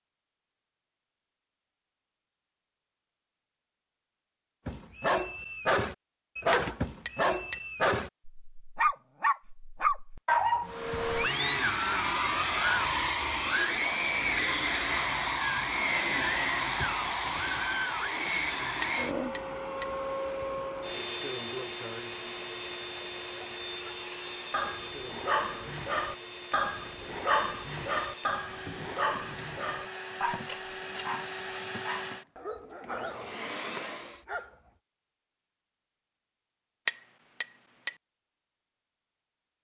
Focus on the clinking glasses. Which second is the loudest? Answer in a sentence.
The loudest moment of the clinking glasses is at 37 seconds.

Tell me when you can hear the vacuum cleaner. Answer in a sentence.
You can hear the vacuum cleaner from 10.6 to 34.2 s.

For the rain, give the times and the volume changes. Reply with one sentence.
The rain can't be heard in this clip.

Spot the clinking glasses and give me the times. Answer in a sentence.
You can hear the clinking glasses from 6.5 to 7.5 s, from 18.8 to 19.9 s and from 36.9 to 37.9 s.